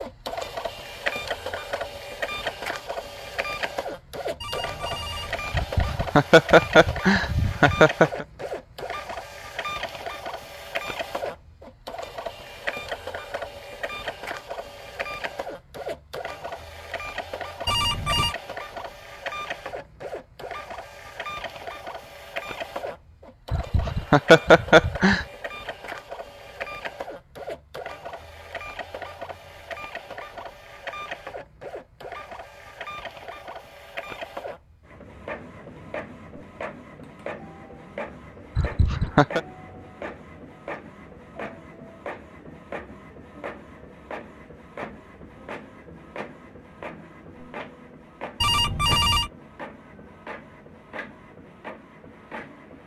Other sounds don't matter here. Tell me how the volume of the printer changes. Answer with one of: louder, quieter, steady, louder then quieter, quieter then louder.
quieter.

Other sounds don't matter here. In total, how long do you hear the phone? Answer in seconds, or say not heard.
3 s.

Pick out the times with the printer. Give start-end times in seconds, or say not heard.
0.0-52.8.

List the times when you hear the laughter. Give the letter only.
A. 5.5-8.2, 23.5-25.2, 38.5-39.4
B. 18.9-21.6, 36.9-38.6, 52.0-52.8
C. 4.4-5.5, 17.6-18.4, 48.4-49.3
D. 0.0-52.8
A.